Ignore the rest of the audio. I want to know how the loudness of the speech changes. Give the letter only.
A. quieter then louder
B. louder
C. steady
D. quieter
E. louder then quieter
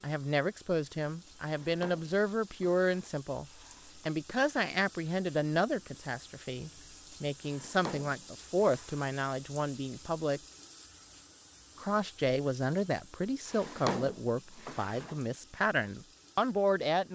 C.